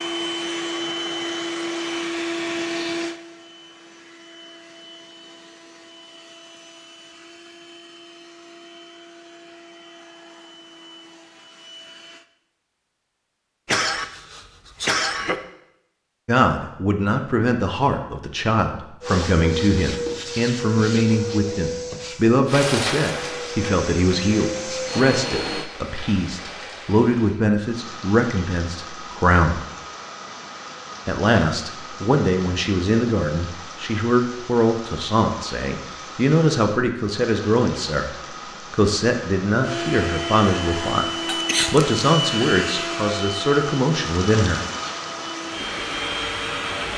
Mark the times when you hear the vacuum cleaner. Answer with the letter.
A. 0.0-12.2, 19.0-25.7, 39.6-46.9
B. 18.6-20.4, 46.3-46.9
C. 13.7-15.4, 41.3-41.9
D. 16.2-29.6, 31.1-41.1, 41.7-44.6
A.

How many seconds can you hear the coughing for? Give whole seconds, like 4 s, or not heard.
2 s.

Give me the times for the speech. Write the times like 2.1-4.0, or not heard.
16.2-29.6, 31.1-41.1, 41.7-44.6.